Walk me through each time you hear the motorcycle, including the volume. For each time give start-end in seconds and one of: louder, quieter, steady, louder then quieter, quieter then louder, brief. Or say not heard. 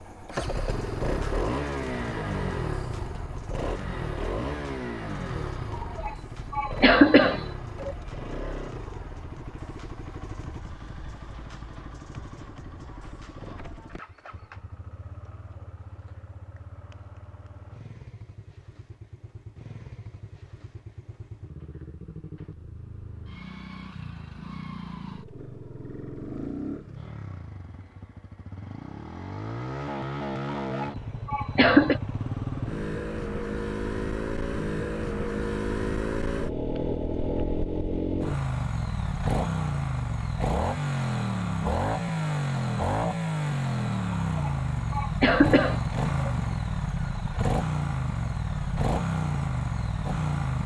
0.0-50.6 quieter then louder.